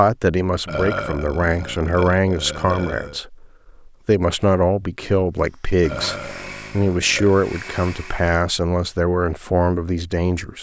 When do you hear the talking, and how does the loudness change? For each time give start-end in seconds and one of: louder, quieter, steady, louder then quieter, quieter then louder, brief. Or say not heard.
0.0-10.5 steady.